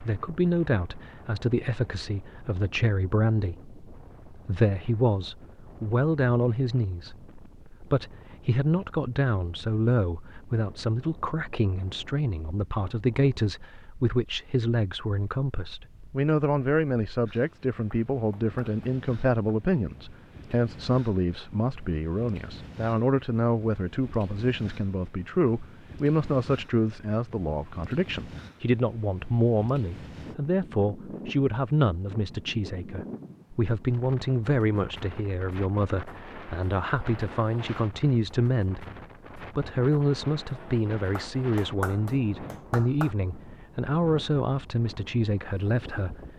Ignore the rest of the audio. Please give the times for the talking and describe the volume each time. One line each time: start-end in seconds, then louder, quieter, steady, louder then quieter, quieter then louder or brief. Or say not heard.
0.0-46.2 steady.